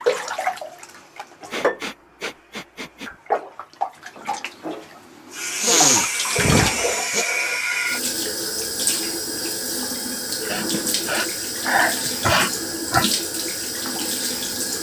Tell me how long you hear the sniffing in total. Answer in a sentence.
You can hear the sniffing for 6 seconds altogether.